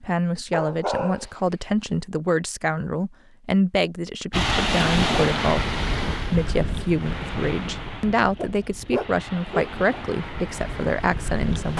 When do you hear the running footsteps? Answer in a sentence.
The running footsteps can't be heard in this clip.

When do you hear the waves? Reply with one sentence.
You can hear the waves from 4.3 to 11.7 s.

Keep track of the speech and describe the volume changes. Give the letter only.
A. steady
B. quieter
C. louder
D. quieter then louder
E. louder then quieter
A.